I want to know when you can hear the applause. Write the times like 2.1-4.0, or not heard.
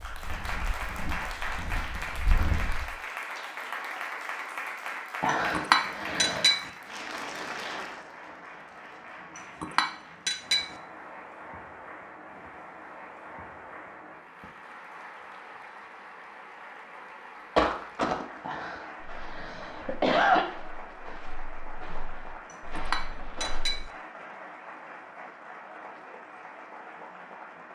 0.0-27.7.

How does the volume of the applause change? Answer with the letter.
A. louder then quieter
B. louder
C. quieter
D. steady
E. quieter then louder
C.